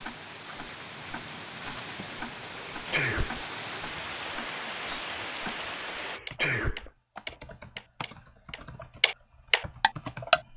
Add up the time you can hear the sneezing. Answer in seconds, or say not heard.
3 s.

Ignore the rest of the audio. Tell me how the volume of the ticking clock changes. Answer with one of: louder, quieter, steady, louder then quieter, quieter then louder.
louder.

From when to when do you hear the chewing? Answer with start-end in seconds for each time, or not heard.
not heard.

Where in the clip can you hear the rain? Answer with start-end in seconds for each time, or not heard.
0.0-6.2.